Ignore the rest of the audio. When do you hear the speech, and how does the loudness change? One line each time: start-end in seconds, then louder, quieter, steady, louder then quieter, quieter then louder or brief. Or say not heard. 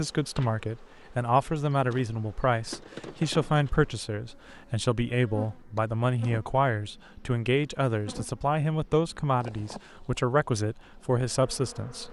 0.0-12.0 steady.